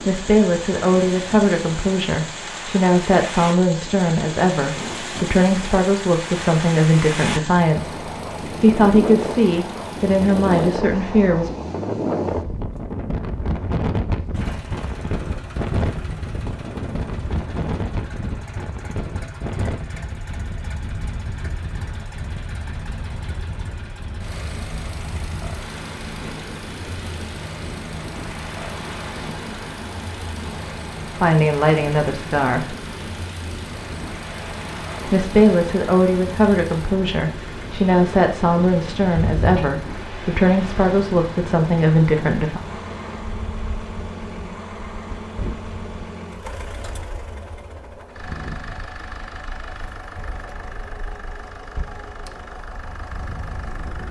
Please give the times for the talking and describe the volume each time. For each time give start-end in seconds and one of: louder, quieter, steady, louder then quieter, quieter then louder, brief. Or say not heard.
0.1-11.6 steady
31.1-32.8 brief
35.0-42.6 steady.